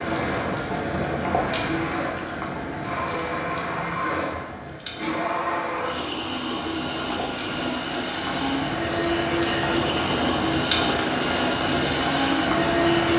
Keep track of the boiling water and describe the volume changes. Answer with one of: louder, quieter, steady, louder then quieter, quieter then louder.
quieter then louder.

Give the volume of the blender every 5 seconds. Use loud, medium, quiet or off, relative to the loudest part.
medium, loud, loud.